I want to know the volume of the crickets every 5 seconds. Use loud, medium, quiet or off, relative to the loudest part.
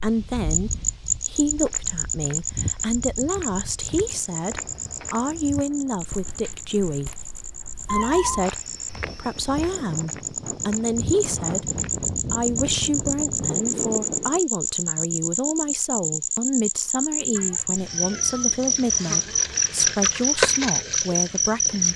medium, quiet, medium, loud, loud.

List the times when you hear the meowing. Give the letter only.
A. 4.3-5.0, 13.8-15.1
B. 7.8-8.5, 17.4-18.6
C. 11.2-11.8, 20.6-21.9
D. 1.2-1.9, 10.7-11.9
B.